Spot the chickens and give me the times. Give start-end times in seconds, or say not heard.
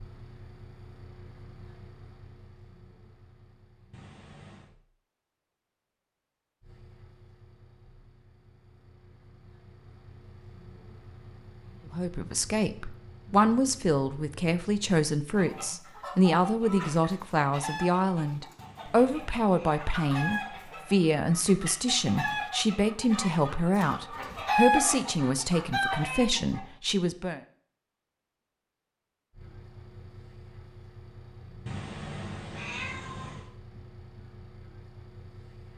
15.3-26.6.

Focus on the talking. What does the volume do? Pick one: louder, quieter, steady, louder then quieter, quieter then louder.
steady.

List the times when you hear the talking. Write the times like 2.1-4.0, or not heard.
11.9-27.4.